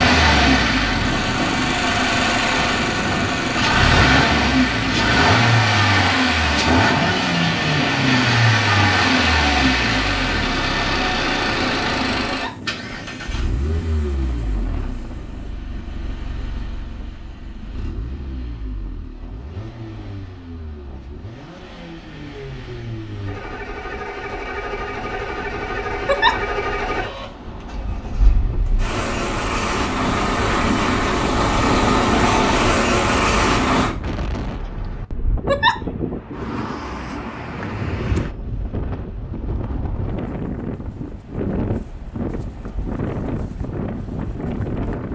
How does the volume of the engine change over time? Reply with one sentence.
The volume of the engine goes down, then up.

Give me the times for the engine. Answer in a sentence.
The engine can be heard from 0.0 to 33.9 s.